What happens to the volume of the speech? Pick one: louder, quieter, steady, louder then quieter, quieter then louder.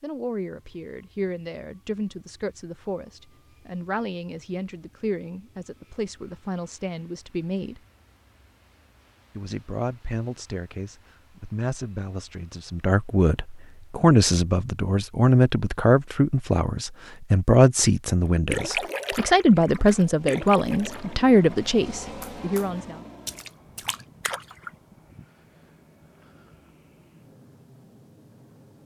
louder.